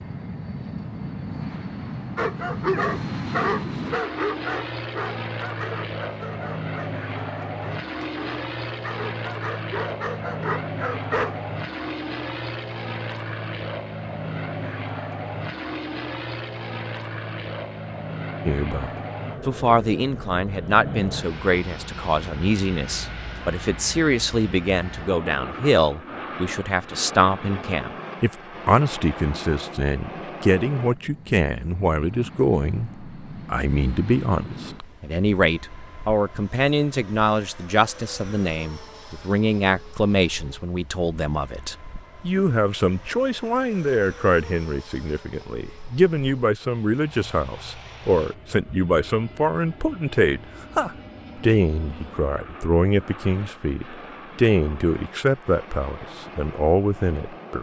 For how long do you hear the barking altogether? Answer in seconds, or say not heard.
9 s.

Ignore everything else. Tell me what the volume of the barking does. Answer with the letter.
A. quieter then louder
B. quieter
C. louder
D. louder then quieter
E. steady
A.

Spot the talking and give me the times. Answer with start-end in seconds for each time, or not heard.
18.4-57.5.